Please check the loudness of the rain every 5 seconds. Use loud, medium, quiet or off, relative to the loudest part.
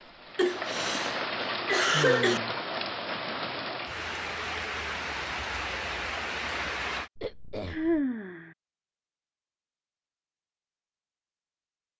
loud, loud, off.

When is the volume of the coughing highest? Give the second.
2 s.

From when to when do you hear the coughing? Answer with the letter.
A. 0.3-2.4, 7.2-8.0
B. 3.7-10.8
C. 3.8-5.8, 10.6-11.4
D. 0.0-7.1
A.